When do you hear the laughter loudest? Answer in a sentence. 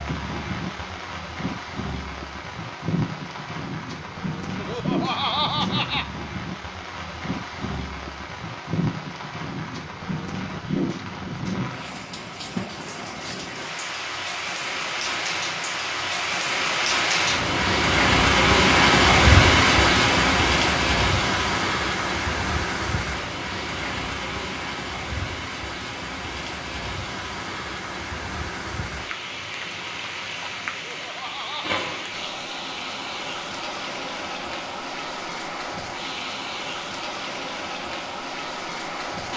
The loudest moment of the laughter is at 5 seconds.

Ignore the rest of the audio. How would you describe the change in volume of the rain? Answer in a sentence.
The loudness of the rain goes up, then down.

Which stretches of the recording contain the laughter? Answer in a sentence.
The laughter can be heard from 4.5 to 6.1 s and from 30.7 to 31.8 s.